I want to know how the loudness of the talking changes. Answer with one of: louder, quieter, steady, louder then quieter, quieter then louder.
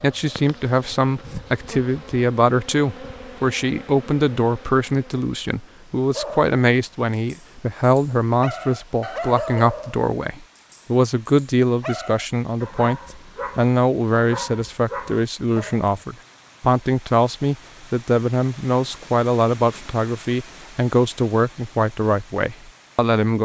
steady.